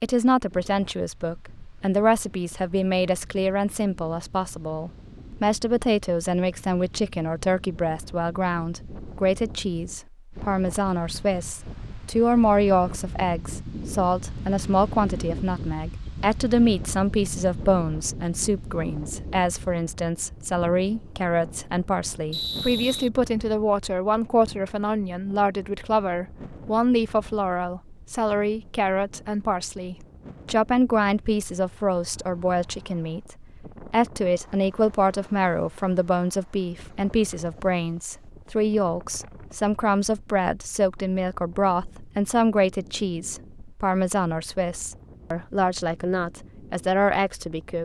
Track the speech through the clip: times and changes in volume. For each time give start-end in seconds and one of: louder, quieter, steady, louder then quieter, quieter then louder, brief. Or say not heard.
0.0-47.8 steady.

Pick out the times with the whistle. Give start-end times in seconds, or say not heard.
22.3-23.1.